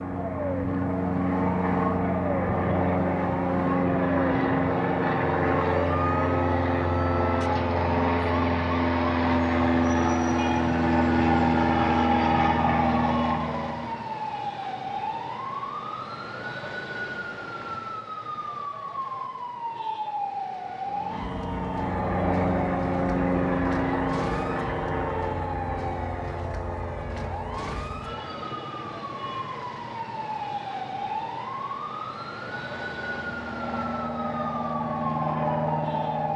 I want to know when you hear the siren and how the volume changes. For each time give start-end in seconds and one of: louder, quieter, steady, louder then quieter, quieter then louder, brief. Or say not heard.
0.0-36.3 steady.